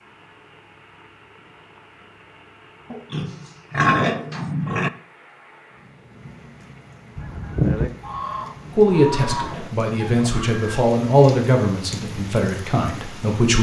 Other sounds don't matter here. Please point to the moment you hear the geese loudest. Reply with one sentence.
The volume of the geese peaks at 8 seconds.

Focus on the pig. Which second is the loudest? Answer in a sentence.
The loudest moment of the pig is at 4 seconds.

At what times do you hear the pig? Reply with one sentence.
The pig can be heard from 2.9 to 4.9 s and from 8.4 to 10.4 s.